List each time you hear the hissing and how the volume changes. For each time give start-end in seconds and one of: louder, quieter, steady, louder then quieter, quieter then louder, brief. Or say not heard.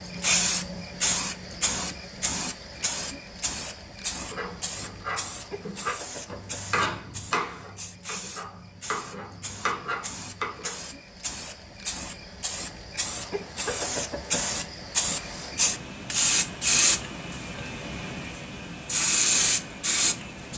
0.0-20.5 quieter then louder.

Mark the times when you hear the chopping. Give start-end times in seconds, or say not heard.
4.2-10.8.